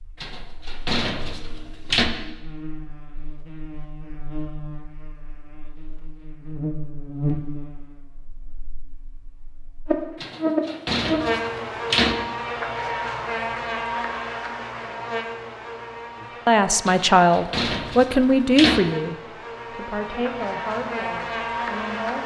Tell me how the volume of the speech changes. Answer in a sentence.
The loudness of the speech goes down.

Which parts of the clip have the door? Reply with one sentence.
You can hear the door from 0.2 to 2.1 s, from 10.2 to 12.2 s and from 16.9 to 18.8 s.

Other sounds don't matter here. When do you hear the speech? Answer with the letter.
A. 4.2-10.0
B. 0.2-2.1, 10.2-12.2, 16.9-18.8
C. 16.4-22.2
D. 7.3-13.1
C.